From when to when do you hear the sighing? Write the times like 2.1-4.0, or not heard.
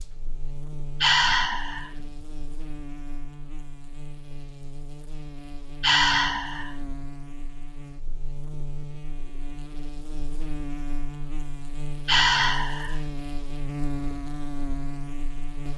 1.0-1.9, 5.8-6.8, 12.1-13.0.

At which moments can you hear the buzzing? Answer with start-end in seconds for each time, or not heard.
0.0-15.7.